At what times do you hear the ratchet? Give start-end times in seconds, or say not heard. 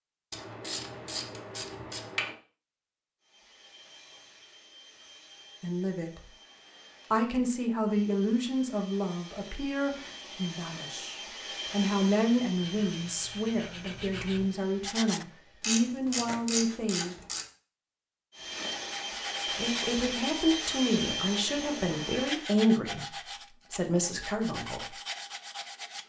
0.3-2.4, 15.6-17.4.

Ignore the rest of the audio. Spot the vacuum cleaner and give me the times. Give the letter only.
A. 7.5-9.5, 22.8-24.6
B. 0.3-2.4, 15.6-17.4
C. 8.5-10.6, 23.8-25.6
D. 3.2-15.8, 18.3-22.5
D.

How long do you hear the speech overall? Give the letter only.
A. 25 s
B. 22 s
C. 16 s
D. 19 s
C.